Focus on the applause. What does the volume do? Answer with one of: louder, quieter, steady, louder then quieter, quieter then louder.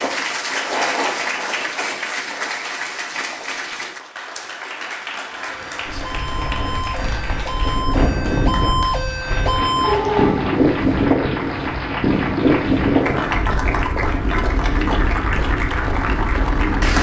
quieter then louder.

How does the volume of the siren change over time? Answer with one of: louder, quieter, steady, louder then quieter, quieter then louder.
louder.